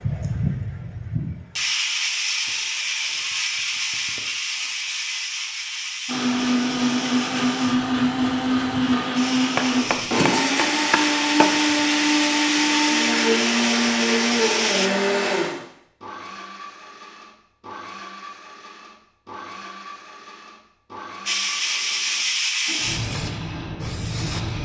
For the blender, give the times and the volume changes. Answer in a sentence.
You can hear the blender from 6.0 to 24.6 s, getting quieter.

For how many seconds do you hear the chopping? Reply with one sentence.
The chopping can be heard for 2 seconds in total.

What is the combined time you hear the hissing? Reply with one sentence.
You can hear the hissing for 18 seconds altogether.